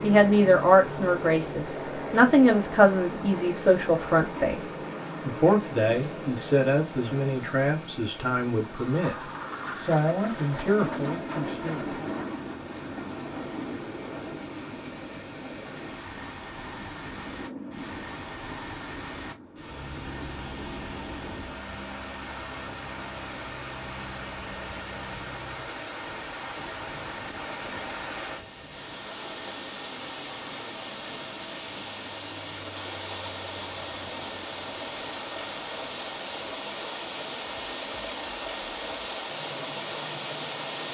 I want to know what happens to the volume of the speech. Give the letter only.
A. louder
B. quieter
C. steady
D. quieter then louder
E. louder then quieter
B.